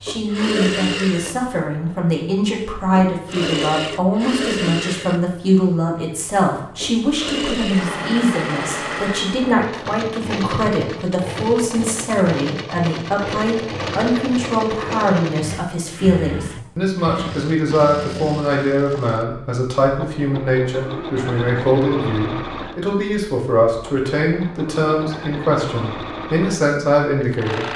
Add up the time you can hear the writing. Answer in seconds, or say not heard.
not heard.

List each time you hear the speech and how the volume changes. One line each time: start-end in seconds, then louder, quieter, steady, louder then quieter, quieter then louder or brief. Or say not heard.
0.0-27.6 steady.